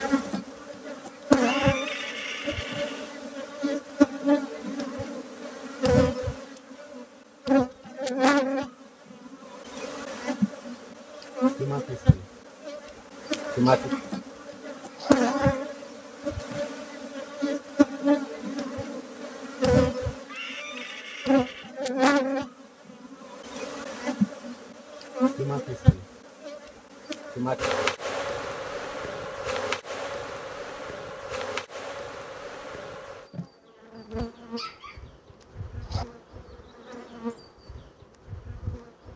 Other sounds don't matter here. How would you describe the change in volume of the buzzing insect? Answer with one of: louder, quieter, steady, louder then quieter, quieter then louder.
quieter.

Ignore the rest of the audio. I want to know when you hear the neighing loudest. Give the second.
2 s.